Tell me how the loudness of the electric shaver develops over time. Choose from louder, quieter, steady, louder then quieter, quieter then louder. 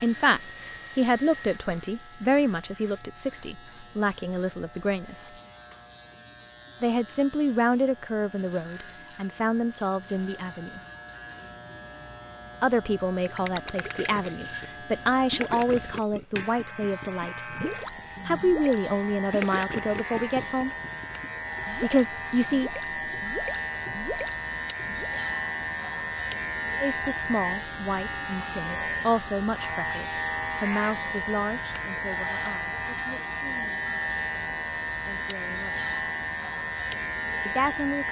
louder.